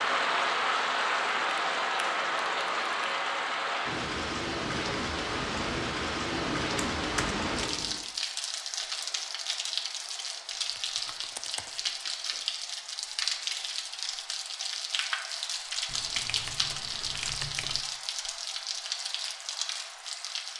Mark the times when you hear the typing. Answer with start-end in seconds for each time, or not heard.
1.3-3.2, 6.5-8.1, 10.7-12.4, 15.8-17.8.